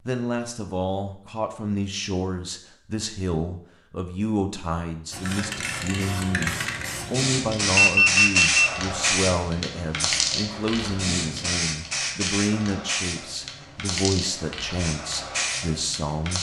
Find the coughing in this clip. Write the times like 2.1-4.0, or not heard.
not heard.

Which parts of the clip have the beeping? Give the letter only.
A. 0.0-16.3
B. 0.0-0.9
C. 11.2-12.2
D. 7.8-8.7
D.